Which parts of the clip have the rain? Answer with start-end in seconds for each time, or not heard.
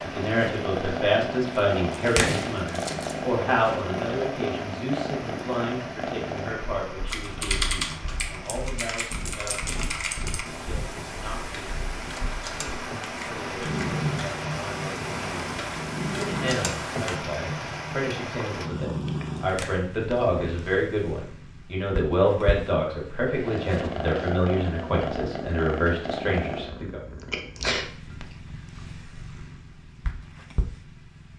0.0-18.7.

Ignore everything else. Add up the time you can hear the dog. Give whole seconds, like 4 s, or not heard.
not heard.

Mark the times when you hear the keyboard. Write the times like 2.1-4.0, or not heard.
7.0-17.2.